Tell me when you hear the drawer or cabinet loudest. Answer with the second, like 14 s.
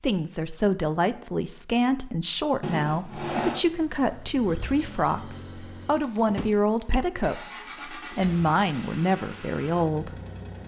3 s.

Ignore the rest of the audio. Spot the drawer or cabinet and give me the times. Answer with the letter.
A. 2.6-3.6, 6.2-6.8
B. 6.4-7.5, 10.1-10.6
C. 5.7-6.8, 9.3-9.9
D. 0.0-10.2
A.